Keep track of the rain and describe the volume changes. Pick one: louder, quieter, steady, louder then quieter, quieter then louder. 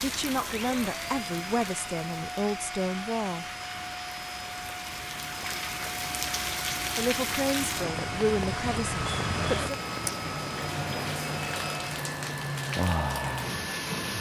louder.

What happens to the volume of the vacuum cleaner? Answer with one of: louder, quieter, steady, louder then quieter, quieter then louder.
steady.